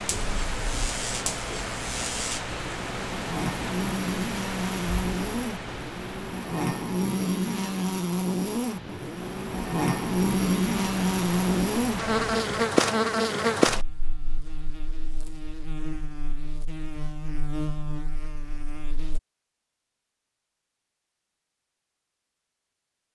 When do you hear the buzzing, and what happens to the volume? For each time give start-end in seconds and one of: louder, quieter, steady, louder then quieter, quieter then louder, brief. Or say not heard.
0.0-19.2 louder then quieter.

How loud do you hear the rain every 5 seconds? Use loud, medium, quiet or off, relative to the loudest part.
loud, medium, loud, off, off.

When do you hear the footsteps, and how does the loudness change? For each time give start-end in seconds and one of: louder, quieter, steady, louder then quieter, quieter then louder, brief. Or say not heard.
not heard.